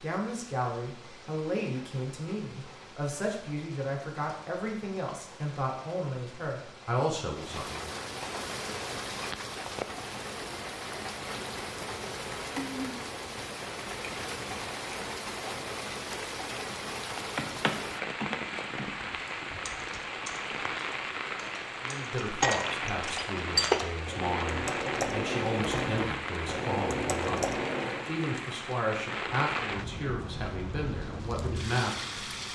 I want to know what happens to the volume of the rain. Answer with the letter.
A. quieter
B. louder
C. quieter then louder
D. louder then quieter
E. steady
B.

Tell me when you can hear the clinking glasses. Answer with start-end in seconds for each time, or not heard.
22.4-23.8.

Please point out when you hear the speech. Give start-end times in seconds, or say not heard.
0.0-8.0, 21.8-32.2.